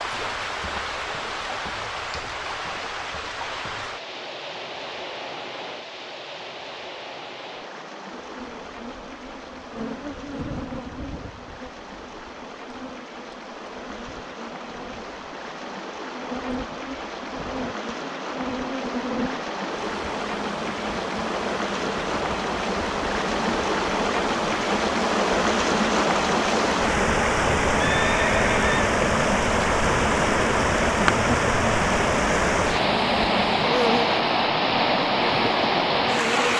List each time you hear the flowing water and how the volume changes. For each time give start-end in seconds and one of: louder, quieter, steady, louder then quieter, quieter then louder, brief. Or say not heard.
0.0-36.5 quieter then louder.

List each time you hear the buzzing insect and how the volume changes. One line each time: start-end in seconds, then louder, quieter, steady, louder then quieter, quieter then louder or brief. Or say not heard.
8.1-36.5 louder.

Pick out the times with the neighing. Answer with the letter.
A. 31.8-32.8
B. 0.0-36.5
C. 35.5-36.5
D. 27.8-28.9
D.